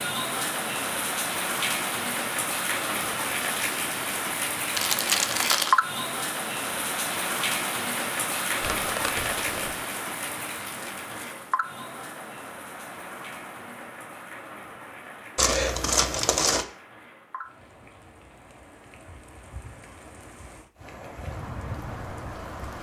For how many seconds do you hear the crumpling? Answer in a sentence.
The crumpling can be heard for 4 seconds in total.